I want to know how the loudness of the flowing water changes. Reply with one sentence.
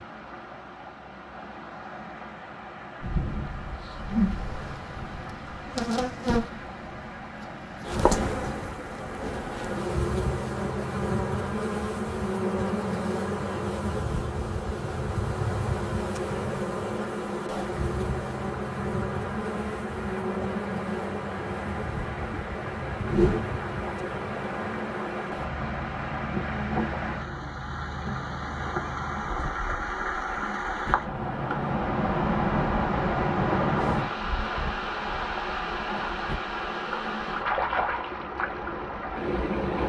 The volume of the flowing water goes up.